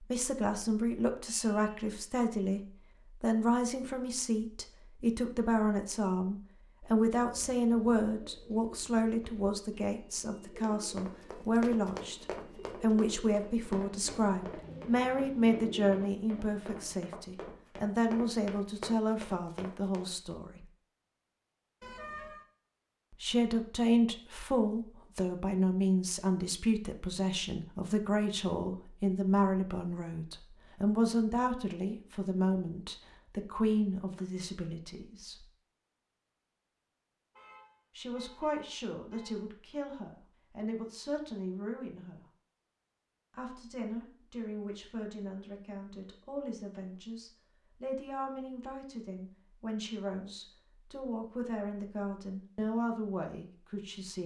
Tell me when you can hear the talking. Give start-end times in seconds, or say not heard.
0.0-2.6, 3.2-20.6, 23.1-35.5, 38.0-42.2, 43.3-54.2.